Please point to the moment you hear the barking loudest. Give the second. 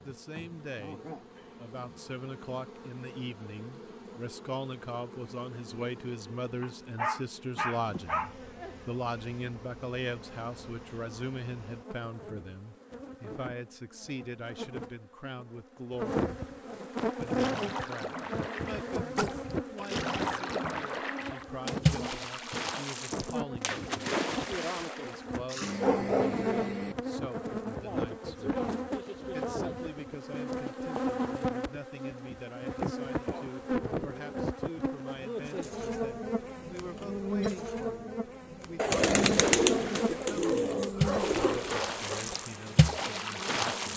26 s.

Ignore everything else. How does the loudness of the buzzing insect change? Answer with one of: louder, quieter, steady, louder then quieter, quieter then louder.
louder.